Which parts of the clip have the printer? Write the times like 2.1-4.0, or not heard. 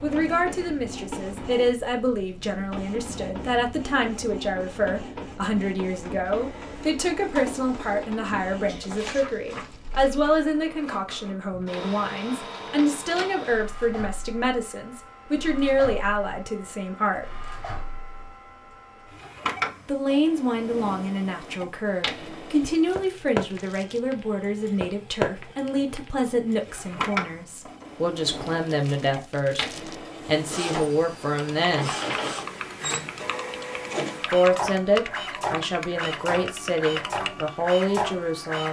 0.0-38.6.